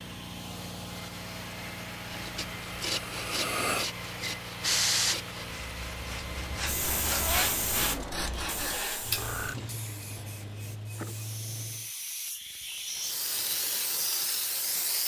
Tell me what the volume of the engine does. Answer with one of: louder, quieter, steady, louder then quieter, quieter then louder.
steady.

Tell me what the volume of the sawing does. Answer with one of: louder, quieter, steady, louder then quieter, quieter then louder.
quieter then louder.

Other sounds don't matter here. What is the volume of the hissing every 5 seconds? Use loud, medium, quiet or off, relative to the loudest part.
loud, loud, medium.